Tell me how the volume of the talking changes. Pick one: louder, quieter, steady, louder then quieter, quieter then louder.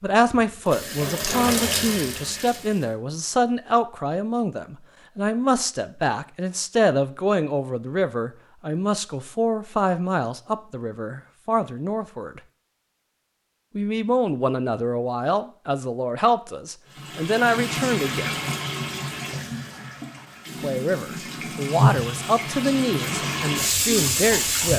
steady.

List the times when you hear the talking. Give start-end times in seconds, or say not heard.
0.0-12.4, 13.8-18.4, 20.6-24.7.